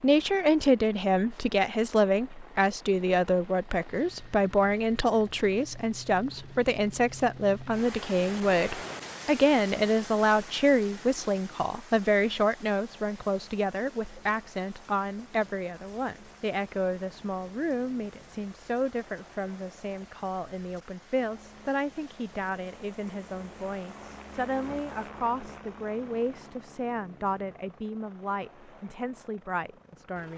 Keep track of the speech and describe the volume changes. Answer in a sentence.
The loudness of the speech goes down.